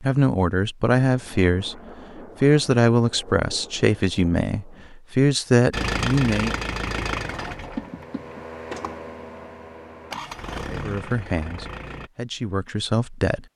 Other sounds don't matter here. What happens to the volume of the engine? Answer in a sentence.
The loudness of the engine goes down.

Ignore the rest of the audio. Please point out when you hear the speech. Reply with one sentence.
You can hear the speech from 0.0 to 1.8 s, from 2.4 to 6.7 s and from 10.7 to 13.4 s.